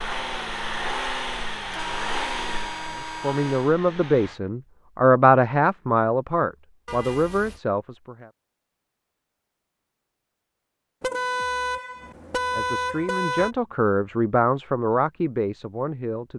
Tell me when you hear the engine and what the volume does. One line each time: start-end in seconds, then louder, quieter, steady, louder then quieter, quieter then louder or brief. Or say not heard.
0.0-4.4 quieter.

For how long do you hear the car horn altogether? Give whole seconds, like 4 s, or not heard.
5 s.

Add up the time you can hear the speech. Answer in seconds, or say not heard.
9 s.